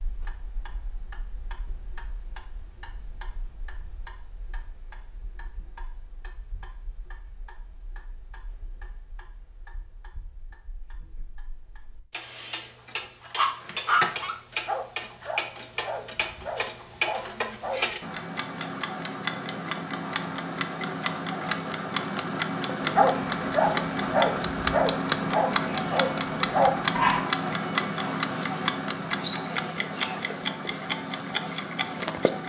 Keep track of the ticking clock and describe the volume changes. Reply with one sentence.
The volume of the ticking clock goes up.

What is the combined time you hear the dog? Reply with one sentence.
The dog can be heard for 9 seconds in total.